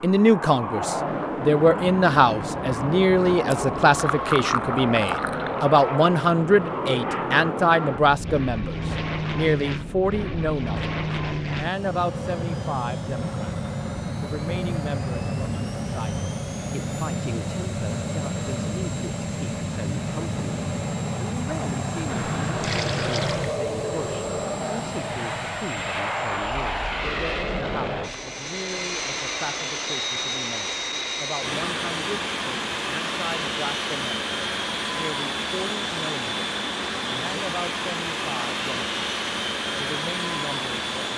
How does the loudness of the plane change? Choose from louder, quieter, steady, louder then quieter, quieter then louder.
steady.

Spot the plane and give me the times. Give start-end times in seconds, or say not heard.
0.0-41.1.